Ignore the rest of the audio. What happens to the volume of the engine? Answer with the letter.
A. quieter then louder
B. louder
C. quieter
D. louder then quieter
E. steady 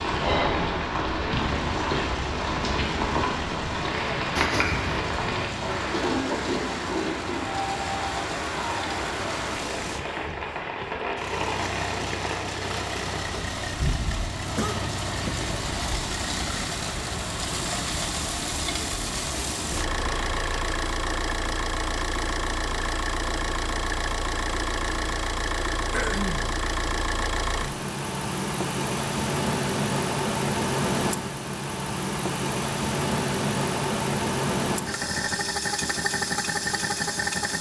B.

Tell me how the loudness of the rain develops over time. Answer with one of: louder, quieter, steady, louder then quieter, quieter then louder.
quieter.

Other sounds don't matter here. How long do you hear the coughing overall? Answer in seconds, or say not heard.
2 s.